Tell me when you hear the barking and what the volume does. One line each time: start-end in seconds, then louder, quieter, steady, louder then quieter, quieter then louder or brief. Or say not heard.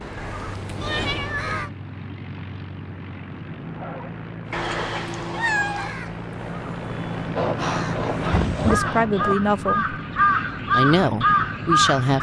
not heard.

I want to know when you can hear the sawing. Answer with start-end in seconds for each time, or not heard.
7.3-9.3.